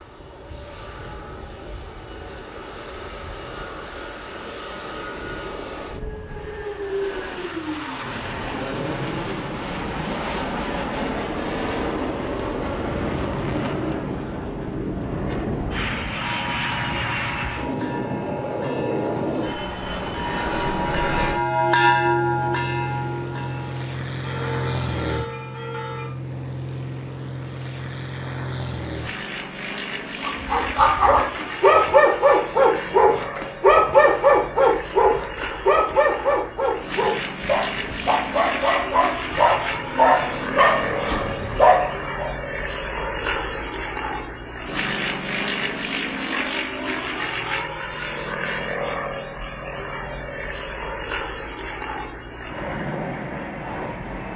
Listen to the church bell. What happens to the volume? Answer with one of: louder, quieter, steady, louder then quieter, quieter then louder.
louder then quieter.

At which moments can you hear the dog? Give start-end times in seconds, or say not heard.
30.2-42.3.